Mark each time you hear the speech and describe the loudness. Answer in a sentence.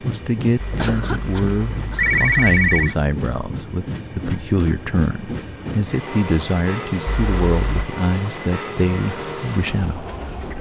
The speech can be heard from 0.0 to 10.5 s, at a steady volume.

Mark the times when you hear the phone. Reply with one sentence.
You can hear the phone from 0.6 to 3.0 s and from 7.0 to 7.9 s.